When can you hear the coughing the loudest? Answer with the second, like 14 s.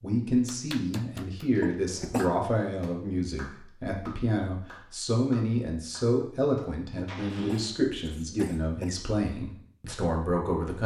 2 s.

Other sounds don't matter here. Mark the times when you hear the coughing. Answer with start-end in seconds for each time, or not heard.
1.6-2.2, 7.0-8.9.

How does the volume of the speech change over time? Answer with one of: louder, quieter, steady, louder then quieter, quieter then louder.
steady.